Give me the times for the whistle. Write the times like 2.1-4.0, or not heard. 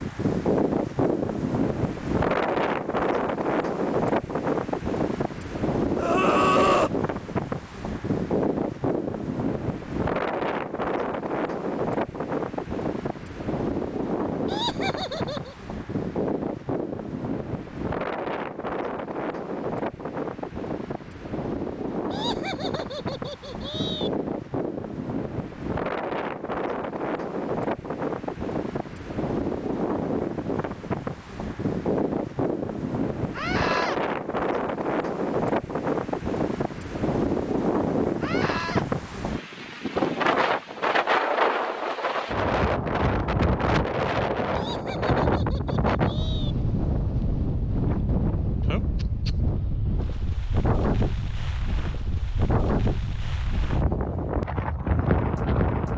not heard.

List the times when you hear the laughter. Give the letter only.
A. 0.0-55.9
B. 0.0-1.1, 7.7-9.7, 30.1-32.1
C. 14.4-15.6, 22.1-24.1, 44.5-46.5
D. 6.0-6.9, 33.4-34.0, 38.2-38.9
C.